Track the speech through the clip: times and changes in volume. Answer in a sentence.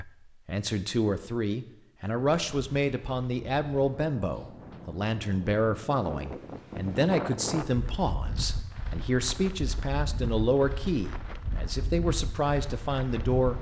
You can hear the speech from 0.0 to 13.5 s, at a steady volume.